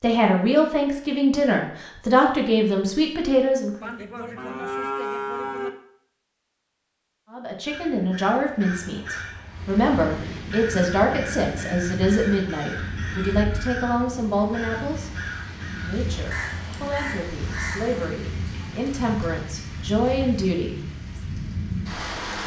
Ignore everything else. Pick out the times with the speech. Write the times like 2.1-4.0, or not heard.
0.0-3.9, 7.3-20.8.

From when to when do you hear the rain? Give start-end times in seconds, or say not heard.
9.4-22.4.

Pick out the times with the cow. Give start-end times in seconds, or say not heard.
3.8-5.7.